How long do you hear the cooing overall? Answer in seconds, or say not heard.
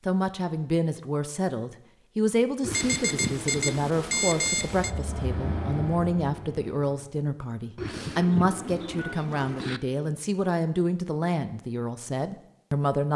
4 s.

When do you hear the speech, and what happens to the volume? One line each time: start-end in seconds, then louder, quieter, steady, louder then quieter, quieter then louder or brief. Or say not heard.
0.1-13.1 steady.